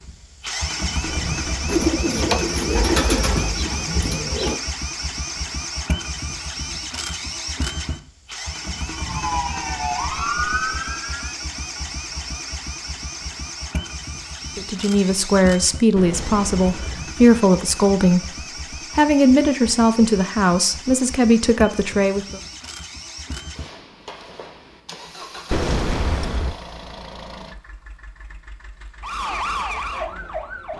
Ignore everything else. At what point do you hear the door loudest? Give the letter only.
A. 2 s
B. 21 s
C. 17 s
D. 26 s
D.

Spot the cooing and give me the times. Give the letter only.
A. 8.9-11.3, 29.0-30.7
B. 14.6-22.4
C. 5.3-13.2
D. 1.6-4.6
D.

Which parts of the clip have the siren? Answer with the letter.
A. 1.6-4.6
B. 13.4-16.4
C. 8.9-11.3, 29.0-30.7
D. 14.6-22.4
C.